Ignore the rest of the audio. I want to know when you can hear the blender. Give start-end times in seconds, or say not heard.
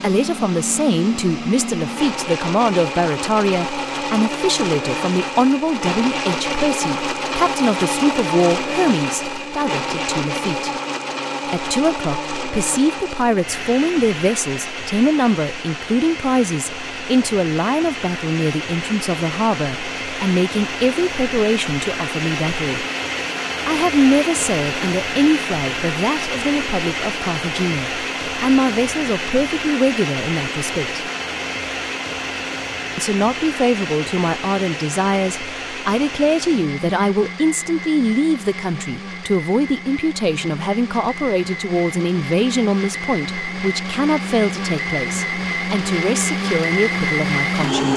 0.0-47.9.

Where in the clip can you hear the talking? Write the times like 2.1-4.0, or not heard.
0.0-10.7, 11.5-22.9, 23.6-31.1, 33.0-47.9.